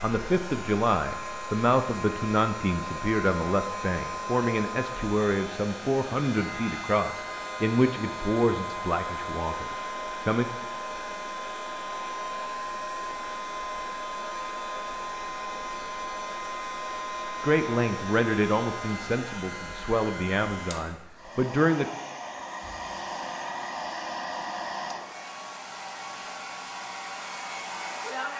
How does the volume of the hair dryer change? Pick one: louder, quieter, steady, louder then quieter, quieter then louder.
steady.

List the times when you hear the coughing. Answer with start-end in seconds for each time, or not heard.
not heard.